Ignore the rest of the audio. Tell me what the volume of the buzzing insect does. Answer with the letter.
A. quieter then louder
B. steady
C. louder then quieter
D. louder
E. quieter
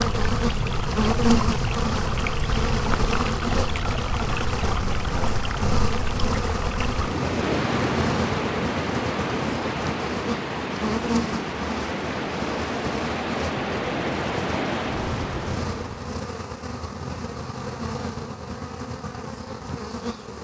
E.